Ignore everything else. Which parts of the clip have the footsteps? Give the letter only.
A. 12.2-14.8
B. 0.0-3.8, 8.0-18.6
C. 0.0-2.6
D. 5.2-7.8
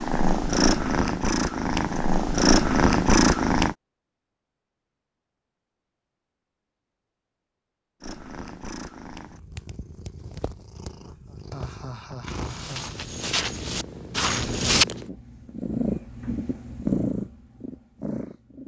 A.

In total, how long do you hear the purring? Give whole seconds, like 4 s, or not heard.
14 s.